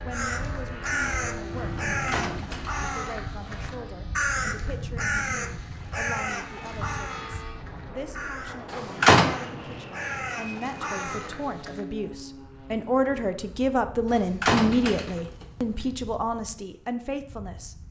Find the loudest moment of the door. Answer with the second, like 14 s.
9 s.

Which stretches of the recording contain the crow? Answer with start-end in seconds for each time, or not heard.
0.1-11.8.